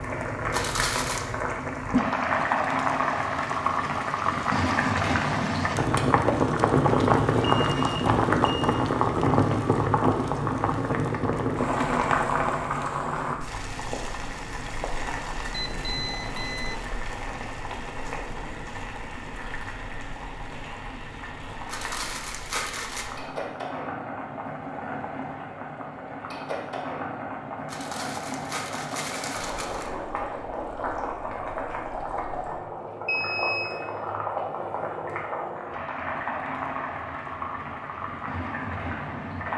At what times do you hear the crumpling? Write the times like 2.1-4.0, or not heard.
0.5-1.2, 21.6-23.1, 27.6-29.9.